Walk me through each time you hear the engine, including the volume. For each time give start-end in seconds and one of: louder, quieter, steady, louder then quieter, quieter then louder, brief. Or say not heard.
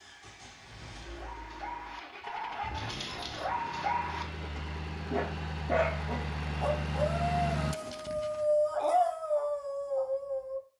0.0-7.8 louder.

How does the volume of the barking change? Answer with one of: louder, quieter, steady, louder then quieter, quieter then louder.
louder.